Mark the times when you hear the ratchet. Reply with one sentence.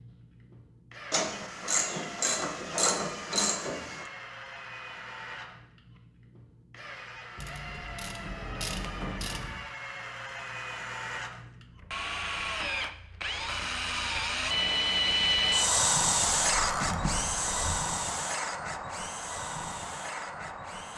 You can hear the ratchet from 1.1 to 4.0 s, from 7.3 to 9.6 s and from 16.4 to 17.8 s.